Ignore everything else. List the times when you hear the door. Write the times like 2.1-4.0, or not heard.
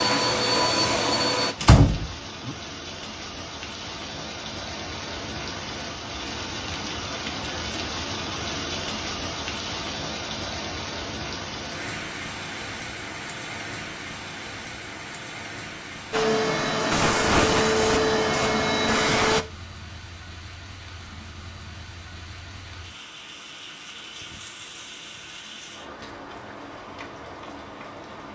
1.6-2.5.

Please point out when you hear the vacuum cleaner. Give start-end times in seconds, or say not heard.
0.0-1.6, 16.1-19.4.